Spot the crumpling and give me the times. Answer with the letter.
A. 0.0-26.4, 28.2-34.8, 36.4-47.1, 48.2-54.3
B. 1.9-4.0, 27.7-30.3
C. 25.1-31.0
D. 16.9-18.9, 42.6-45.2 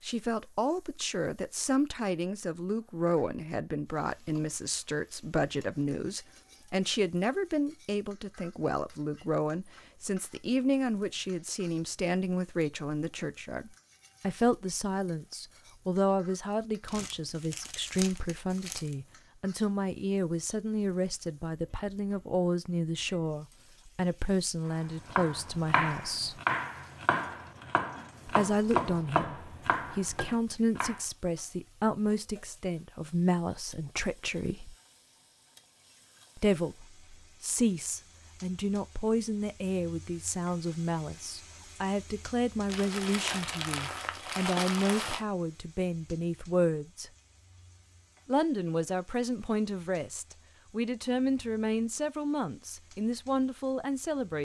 D.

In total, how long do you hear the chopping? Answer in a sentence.
You can hear the chopping for 6 seconds altogether.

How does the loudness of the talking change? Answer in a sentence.
The loudness of the talking stays about the same.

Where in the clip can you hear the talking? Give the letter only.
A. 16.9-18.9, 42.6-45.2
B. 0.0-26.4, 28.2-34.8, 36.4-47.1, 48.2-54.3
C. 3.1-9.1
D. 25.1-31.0
B.